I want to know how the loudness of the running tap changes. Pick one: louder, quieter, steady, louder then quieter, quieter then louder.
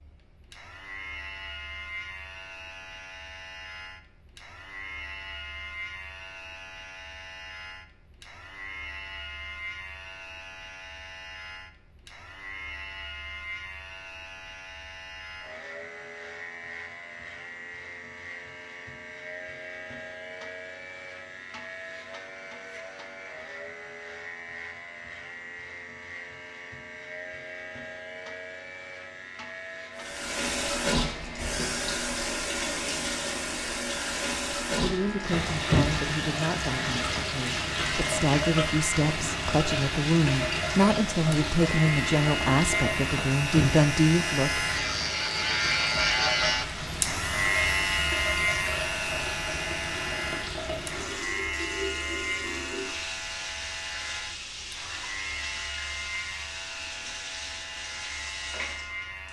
quieter.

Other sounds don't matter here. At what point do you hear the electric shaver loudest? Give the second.
46 s.